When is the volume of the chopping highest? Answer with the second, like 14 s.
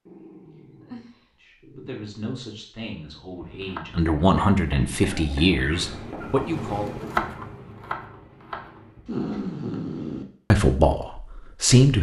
7 s.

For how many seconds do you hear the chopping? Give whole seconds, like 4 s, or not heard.
6 s.